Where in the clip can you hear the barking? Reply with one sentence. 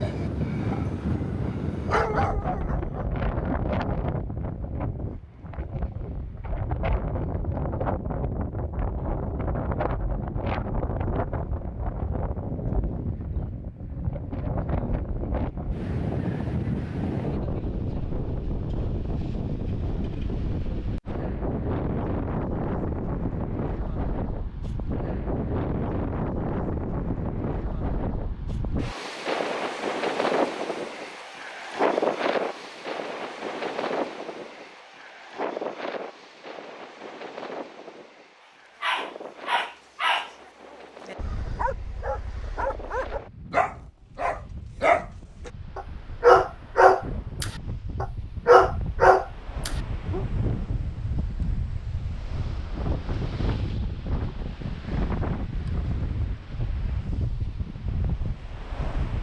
The barking can be heard from 0.0 to 3.0 s and from 38.8 to 50.2 s.